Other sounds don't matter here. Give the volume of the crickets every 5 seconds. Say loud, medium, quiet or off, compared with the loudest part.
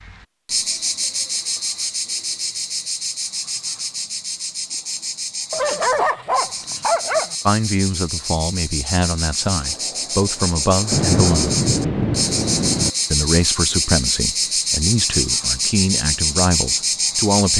medium, medium, loud, loud.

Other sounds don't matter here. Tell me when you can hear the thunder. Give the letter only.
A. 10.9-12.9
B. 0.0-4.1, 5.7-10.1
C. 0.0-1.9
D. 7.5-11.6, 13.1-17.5
A.